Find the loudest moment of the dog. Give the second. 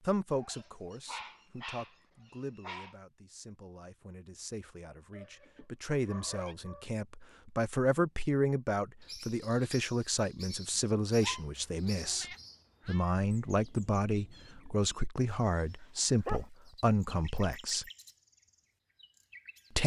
16 s.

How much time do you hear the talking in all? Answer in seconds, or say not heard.
17 s.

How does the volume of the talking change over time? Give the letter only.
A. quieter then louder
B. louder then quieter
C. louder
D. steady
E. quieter
C.